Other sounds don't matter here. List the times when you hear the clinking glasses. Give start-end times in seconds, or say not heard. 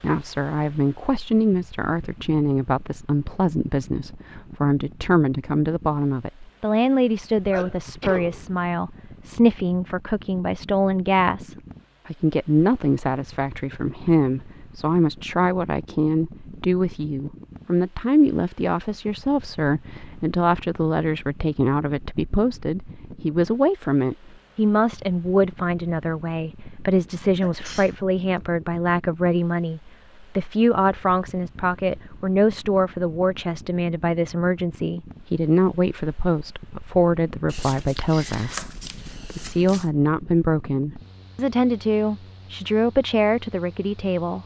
not heard.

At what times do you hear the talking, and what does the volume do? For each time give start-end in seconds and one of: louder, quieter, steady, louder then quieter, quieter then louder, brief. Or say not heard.
0.0-44.4 steady.